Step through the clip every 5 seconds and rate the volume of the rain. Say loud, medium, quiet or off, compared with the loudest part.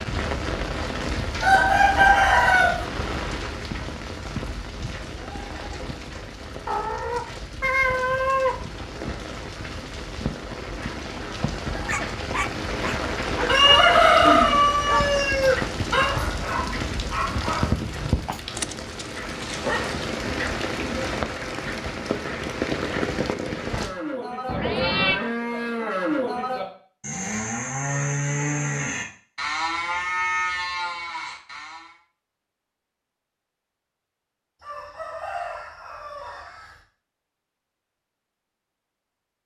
loud, medium, loud, loud, loud, off, off, off.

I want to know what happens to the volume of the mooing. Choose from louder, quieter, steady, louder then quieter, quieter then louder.
steady.